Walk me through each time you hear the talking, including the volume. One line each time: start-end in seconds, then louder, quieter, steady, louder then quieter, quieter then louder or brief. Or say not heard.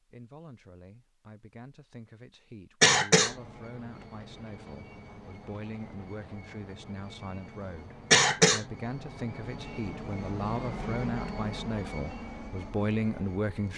0.0-13.7 louder.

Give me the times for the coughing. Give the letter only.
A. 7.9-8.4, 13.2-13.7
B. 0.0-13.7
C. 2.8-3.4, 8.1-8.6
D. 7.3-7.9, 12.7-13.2
C.